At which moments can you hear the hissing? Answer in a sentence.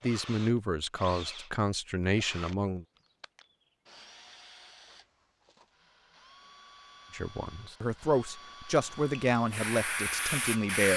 You can hear the hissing from 8.8 to 10.9 s.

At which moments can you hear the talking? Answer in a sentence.
The talking can be heard from 0.0 to 2.9 s and from 7.1 to 10.9 s.